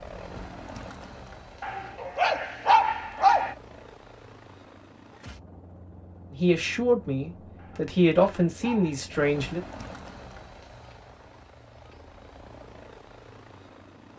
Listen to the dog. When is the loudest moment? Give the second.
3 s.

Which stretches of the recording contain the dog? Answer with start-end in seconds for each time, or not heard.
1.6-3.5, 7.5-9.1.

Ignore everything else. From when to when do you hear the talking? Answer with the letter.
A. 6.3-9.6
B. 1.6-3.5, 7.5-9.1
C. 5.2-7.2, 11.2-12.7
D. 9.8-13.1
A.